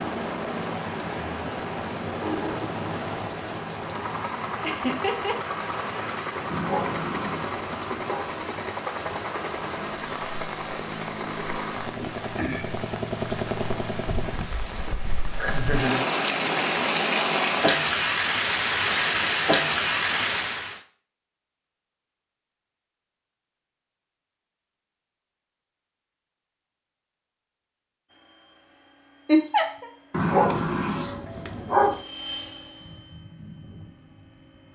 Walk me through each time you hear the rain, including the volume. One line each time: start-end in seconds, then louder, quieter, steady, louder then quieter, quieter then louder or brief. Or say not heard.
0.0-20.8 louder.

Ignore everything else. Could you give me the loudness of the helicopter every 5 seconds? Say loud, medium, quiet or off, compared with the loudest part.
loud, loud, loud, off, off, quiet, medium.